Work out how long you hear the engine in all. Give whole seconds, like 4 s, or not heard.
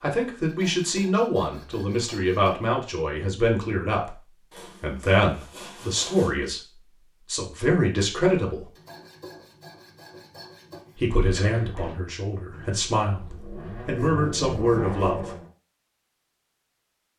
4 s.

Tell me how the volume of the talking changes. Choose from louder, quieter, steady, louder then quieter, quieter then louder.
steady.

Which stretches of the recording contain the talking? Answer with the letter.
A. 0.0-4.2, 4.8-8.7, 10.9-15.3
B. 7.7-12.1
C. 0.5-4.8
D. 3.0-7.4
A.